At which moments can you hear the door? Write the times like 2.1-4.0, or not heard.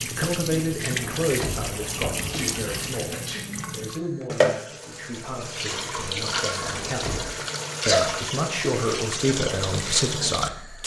0.9-2.9, 6.6-7.3.